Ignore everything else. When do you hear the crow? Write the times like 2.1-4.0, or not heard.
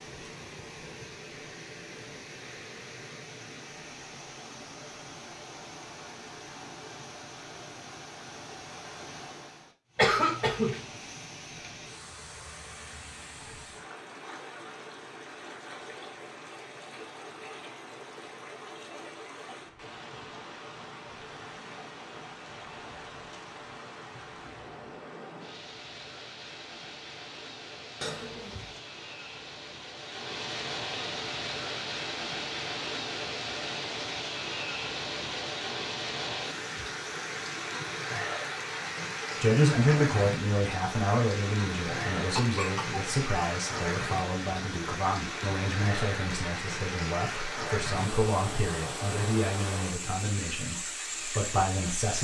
not heard.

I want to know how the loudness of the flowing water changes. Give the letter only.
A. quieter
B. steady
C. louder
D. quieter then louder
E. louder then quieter
C.